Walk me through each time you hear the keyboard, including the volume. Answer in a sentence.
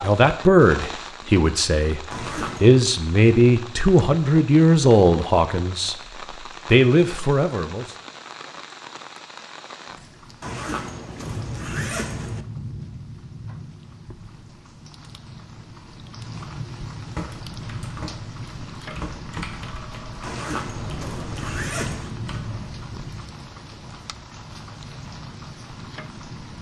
The keyboard can be heard from 17.1 to 22.7 s, at a steady volume.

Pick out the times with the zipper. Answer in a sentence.
The zipper can be heard from 2.1 to 2.8 s, from 10.4 to 12.4 s and from 20.2 to 22.2 s.